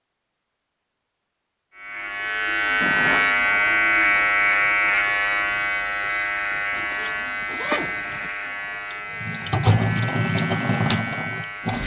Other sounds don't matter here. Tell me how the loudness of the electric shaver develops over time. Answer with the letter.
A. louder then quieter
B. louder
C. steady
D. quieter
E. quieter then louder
D.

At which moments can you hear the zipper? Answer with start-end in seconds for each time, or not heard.
2.8-3.7, 6.7-8.3.